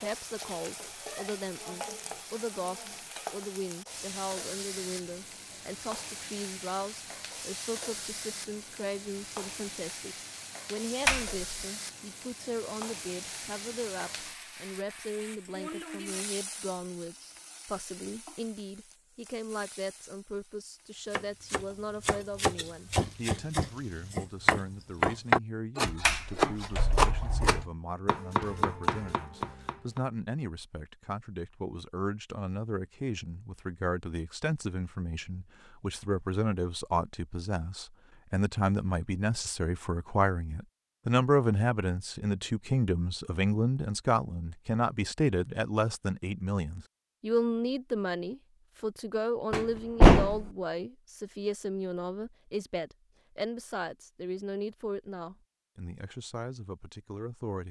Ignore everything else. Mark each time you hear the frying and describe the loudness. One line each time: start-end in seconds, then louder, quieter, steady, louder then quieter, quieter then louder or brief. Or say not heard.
0.0-24.3 quieter.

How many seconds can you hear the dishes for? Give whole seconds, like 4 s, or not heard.
not heard.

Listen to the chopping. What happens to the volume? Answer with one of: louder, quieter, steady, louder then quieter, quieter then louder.
louder then quieter.